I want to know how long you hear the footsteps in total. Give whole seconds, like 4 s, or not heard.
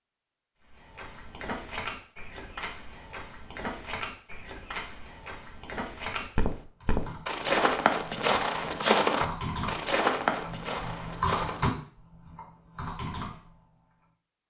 11 s.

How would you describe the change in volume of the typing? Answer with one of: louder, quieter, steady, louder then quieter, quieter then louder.
louder then quieter.